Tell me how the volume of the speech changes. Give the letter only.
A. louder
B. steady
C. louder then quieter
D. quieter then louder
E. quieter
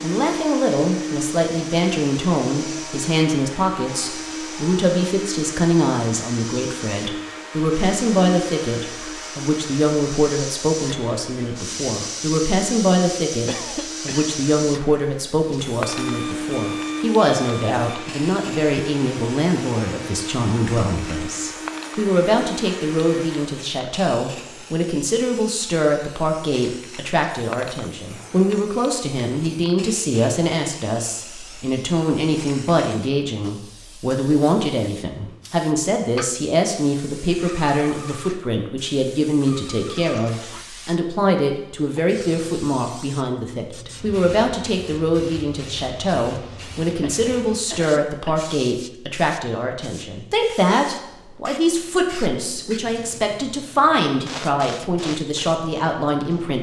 B.